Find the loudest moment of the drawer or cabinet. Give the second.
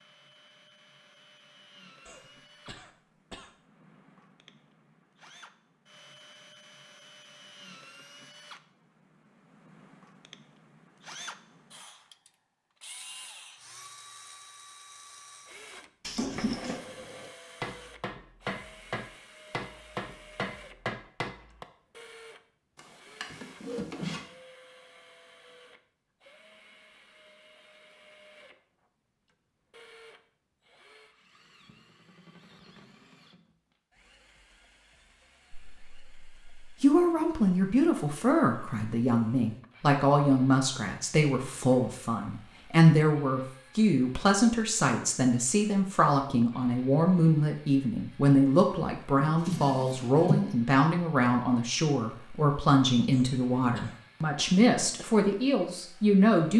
50 s.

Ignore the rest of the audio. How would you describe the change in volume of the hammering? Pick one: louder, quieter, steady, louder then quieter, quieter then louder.
louder.